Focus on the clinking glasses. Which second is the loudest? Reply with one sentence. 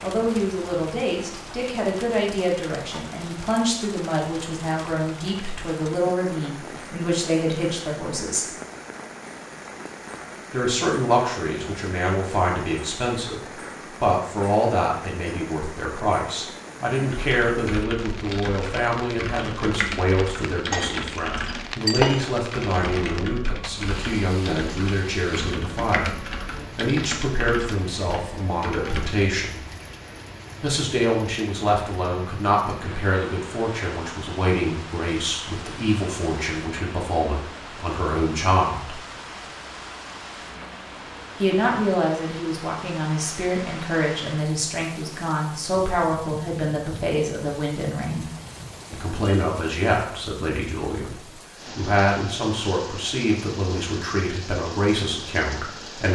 The loudest moment of the clinking glasses is at 22 seconds.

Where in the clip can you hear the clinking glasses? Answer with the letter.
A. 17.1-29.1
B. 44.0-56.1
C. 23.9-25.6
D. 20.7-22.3
D.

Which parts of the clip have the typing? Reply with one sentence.
The typing can be heard from 17.1 to 29.1 s.